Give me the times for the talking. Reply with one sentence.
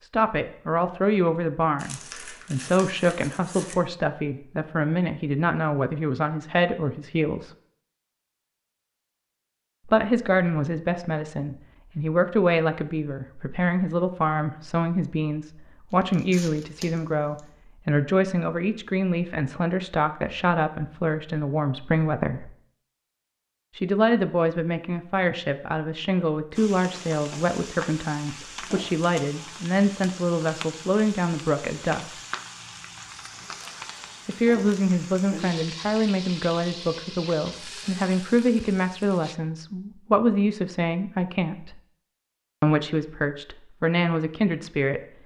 The talking can be heard from 0.0 to 7.5 s, from 9.8 to 22.5 s, from 23.8 to 32.2 s, from 34.2 to 41.8 s and from 42.6 to 45.0 s.